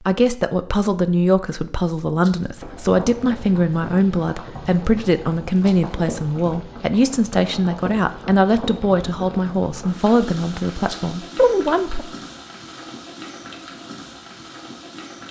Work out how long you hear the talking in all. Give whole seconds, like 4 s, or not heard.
12 s.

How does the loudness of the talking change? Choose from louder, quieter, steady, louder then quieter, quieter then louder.
steady.